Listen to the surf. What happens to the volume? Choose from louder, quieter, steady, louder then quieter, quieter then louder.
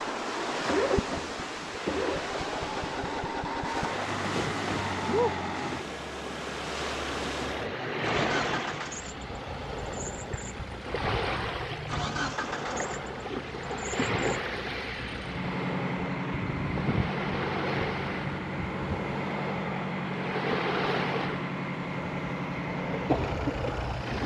steady.